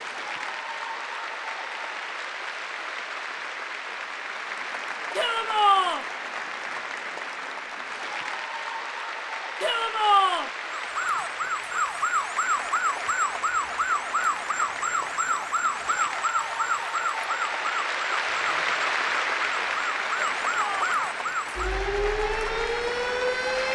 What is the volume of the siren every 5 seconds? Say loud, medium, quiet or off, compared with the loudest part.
off, off, loud, loud, loud.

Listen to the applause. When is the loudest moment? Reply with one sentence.
The loudest moment of the applause is at 19 seconds.